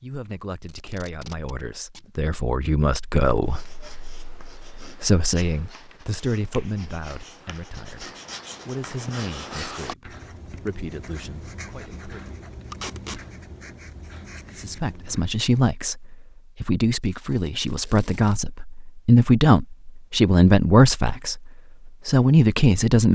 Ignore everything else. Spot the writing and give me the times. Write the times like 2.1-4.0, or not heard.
3.4-15.3.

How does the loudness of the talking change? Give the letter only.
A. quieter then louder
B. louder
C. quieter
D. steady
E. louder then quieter
A.